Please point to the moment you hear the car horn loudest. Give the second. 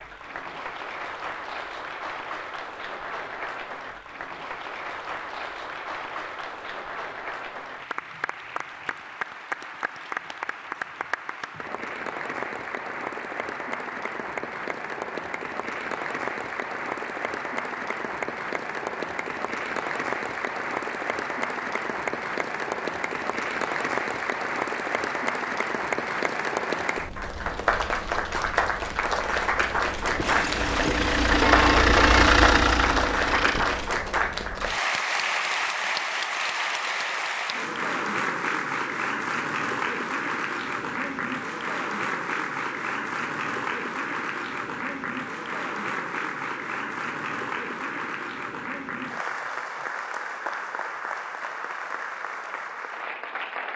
32 s.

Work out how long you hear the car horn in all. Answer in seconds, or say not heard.
2 s.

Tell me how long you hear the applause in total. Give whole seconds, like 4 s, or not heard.
54 s.